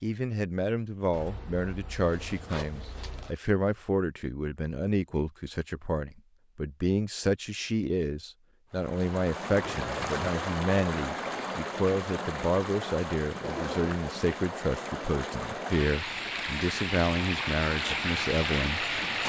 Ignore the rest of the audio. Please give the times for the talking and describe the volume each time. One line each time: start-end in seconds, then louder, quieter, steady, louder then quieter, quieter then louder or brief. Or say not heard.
0.0-18.9 steady.